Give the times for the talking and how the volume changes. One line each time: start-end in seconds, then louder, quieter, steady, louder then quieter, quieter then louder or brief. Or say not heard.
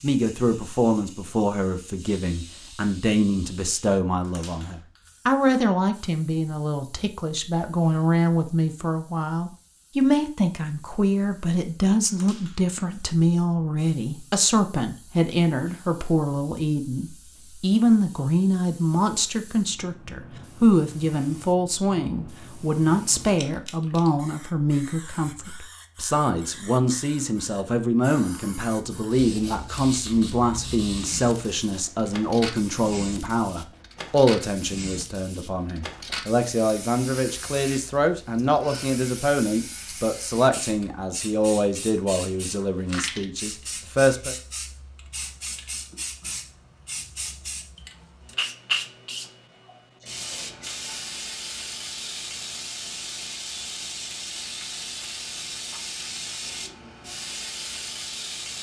0.0-44.4 steady.